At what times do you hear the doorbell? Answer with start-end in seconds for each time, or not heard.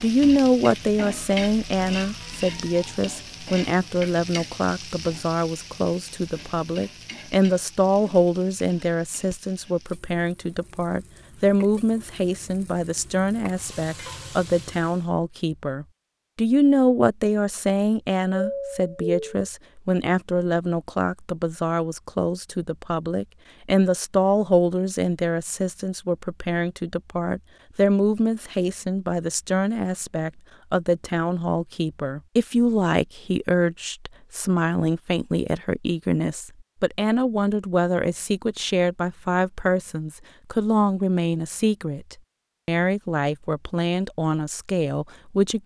18.4-19.4.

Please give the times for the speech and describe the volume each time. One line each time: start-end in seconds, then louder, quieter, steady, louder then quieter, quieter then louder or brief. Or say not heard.
0.0-45.6 steady.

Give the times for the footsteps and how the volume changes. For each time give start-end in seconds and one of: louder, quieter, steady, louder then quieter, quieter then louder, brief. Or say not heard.
not heard.